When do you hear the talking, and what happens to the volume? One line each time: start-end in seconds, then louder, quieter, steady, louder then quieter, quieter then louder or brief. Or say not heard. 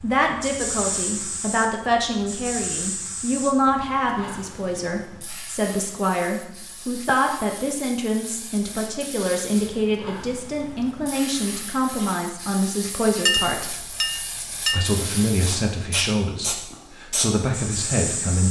0.0-18.4 steady.